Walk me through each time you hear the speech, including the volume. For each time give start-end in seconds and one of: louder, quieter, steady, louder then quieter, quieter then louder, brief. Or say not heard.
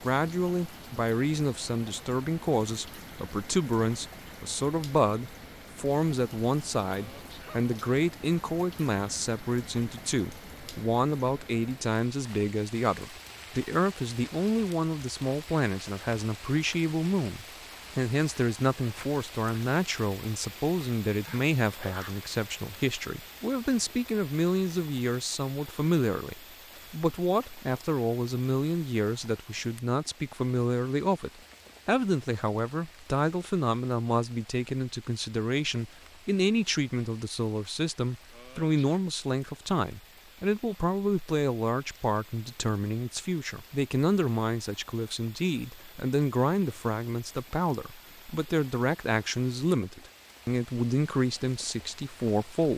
0.0-52.7 steady.